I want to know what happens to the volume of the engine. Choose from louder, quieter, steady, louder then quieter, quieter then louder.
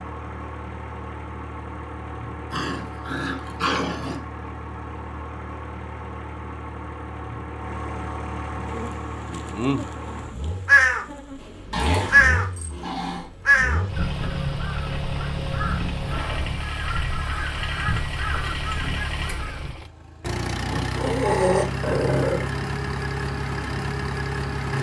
louder.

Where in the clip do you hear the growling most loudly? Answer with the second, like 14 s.
21 s.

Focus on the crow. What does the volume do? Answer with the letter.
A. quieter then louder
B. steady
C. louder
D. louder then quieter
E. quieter
E.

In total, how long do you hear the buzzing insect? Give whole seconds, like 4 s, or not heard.
3 s.